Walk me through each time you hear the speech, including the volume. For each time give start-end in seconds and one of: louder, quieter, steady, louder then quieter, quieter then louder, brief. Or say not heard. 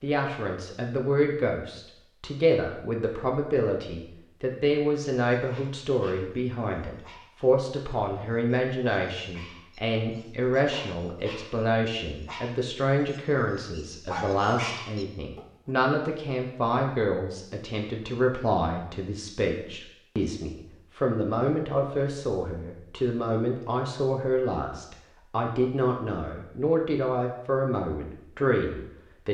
0.0-29.2 steady.